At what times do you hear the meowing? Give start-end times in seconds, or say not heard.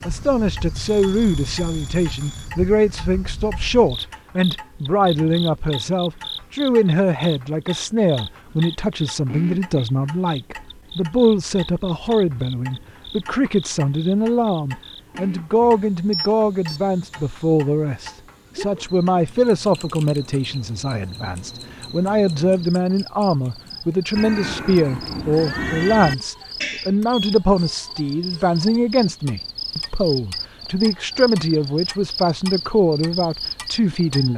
24.1-26.1.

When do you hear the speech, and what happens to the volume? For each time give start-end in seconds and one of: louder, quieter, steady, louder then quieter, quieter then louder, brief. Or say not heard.
0.0-34.3 steady.